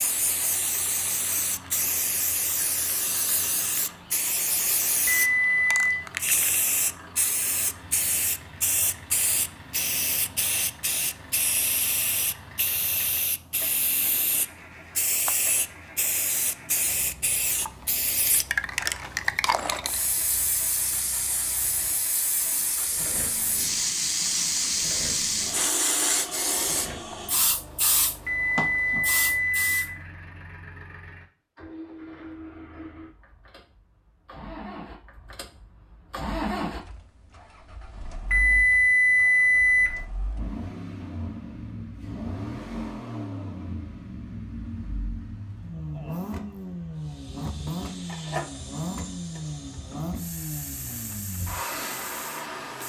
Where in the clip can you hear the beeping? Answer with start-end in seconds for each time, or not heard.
5.0-5.9, 28.2-29.9, 38.3-40.0.